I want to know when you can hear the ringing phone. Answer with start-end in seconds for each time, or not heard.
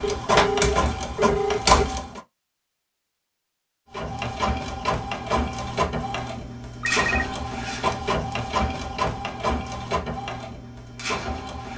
0.0-1.6, 6.8-7.4.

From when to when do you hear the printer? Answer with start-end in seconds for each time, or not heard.
0.0-2.2, 3.9-11.7.